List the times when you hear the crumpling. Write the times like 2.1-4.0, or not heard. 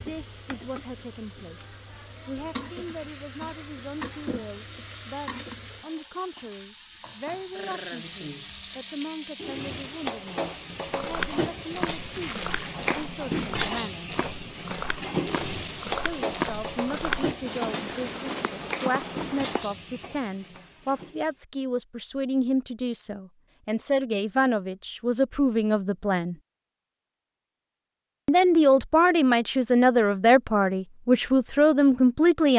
12.2-12.8.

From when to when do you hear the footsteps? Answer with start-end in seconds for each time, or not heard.
10.9-19.6.